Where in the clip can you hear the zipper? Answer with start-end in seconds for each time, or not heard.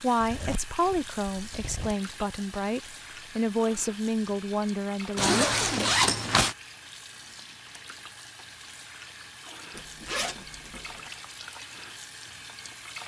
0.2-1.9, 5.2-6.5, 9.7-11.2.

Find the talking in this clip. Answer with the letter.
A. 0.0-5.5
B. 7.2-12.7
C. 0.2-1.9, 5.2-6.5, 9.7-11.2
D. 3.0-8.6
A.